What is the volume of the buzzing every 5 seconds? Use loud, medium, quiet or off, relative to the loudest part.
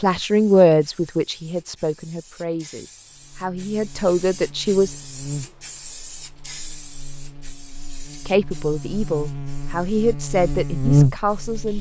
quiet, quiet, loud.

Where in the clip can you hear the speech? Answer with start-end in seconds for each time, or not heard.
0.0-5.0, 8.2-11.7.